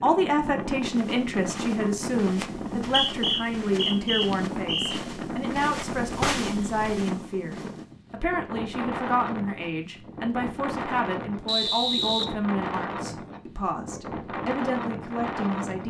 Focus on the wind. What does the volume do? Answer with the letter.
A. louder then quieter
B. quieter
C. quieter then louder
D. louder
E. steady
E.